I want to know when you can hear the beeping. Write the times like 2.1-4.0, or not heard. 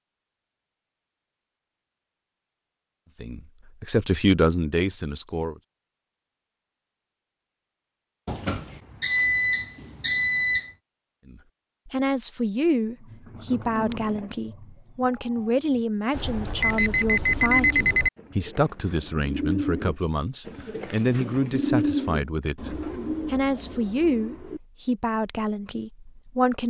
8.2-10.7, 16.1-18.1.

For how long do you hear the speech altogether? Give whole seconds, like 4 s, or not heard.
18 s.